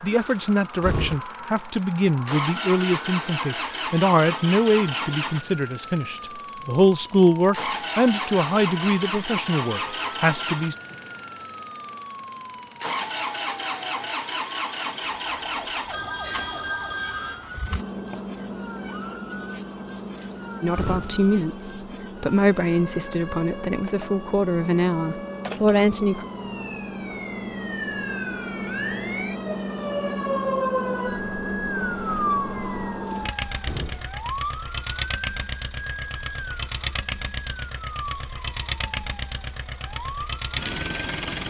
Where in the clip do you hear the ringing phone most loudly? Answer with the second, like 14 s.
17 s.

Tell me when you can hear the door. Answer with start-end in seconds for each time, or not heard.
0.2-1.2, 20.1-21.3, 33.0-34.2.